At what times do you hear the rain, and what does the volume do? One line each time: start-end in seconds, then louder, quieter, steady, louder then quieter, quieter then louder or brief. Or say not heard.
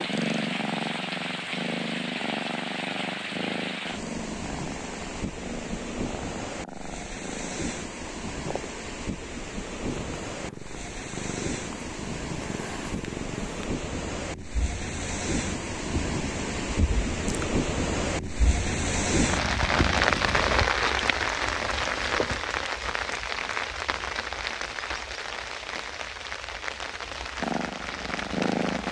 0.0-28.8 louder then quieter.